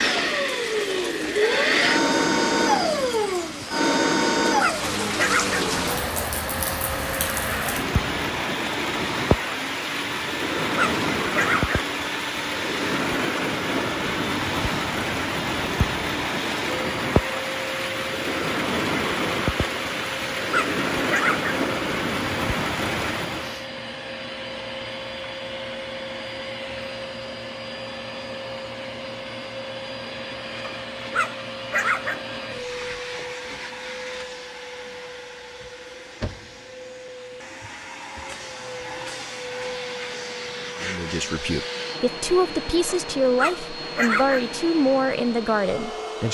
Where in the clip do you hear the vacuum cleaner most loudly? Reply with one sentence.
The volume of the vacuum cleaner peaks at 2 seconds.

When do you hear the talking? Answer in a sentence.
The talking can be heard from 40.8 to 46.3 s.